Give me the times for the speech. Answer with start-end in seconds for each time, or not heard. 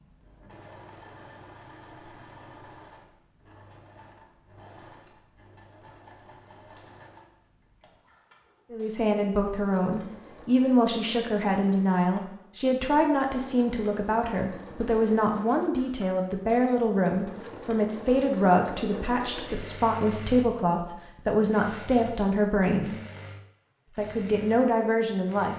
8.7-22.9, 23.9-25.5.